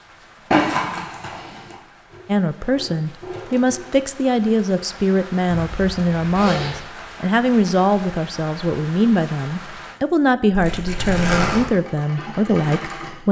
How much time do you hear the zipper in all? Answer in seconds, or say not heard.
4 s.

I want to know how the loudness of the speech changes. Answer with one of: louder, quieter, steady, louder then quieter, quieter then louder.
steady.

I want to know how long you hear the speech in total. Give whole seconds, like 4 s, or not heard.
11 s.